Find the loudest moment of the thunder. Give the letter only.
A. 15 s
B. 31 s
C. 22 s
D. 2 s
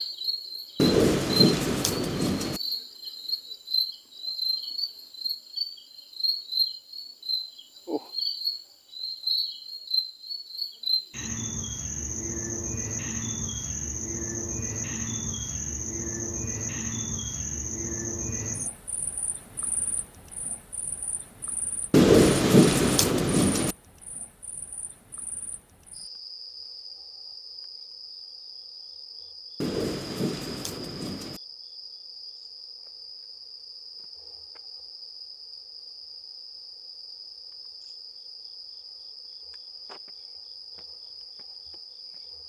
C.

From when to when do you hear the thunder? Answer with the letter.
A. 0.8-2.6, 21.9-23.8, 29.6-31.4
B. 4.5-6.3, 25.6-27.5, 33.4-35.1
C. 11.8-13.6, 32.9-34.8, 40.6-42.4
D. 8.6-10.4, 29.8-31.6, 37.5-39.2
A.